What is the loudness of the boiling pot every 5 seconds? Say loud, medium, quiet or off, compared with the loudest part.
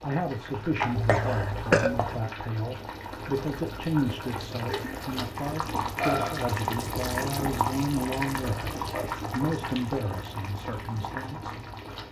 medium, loud, medium.